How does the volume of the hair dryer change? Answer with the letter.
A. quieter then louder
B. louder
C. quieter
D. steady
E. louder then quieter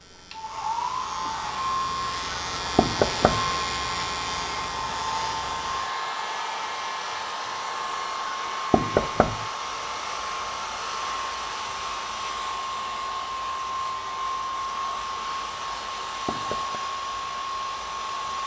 D.